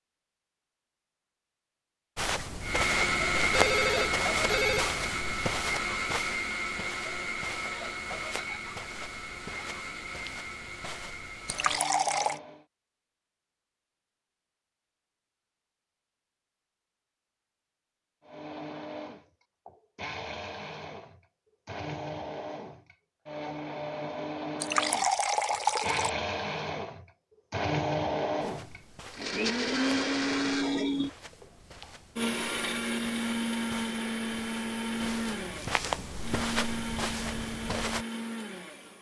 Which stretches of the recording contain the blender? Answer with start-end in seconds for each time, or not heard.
2.6-12.7, 18.2-38.9.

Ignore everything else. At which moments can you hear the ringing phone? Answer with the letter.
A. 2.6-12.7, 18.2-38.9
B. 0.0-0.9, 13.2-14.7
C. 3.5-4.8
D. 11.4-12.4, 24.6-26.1
C.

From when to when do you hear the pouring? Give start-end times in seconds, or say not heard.
11.4-12.4, 24.6-26.1.